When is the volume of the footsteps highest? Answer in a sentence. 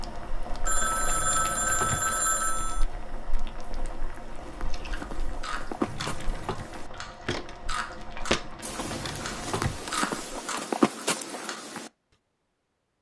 The loudest moment of the footsteps is at 11 seconds.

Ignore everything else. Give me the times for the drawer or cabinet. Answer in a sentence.
You can hear the drawer or cabinet from 1.1 to 2.1 s, from 5.8 to 6.7 s and from 8.8 to 9.8 s.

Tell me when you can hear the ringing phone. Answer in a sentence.
You can hear the ringing phone from 0.7 to 2.9 s.